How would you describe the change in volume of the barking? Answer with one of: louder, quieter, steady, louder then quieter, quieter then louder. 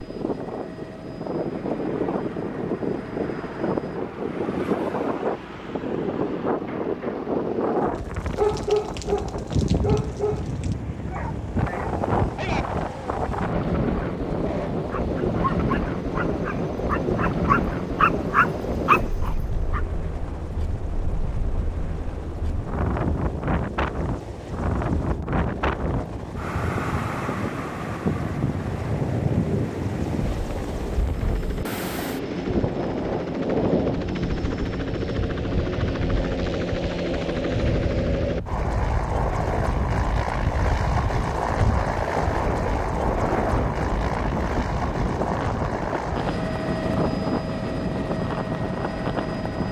quieter then louder.